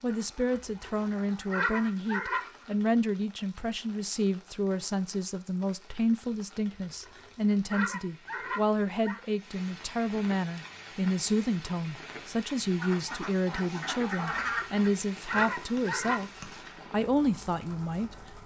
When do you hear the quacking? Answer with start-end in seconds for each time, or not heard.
0.1-2.8, 12.8-14.9.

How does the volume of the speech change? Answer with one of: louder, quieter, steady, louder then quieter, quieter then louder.
steady.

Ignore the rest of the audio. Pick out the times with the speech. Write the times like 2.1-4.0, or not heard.
0.0-18.4.